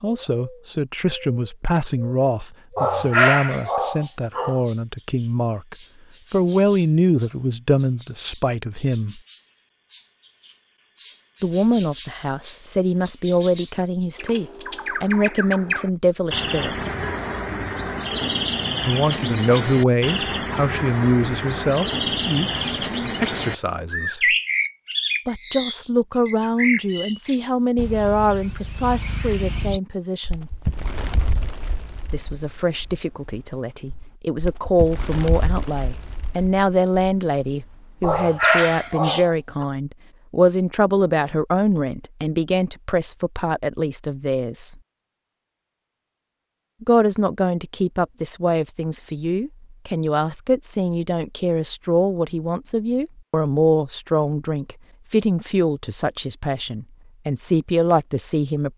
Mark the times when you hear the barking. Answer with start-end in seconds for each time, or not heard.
2.8-4.6, 38.0-39.6.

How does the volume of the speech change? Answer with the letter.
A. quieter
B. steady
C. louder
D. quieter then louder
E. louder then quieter
B.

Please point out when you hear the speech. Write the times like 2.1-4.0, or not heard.
0.0-9.2, 11.4-16.8, 18.9-24.4, 25.2-30.5, 32.1-44.8, 46.8-58.7.